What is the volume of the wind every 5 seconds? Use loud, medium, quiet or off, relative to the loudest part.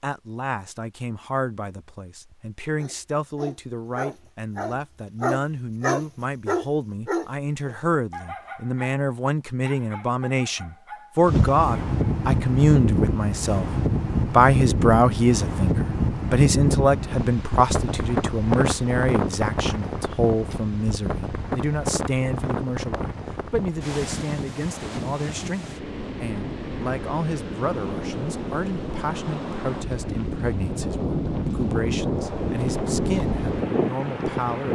off, off, loud, loud, medium, medium, loud.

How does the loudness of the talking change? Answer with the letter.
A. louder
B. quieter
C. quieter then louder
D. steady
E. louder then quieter
E.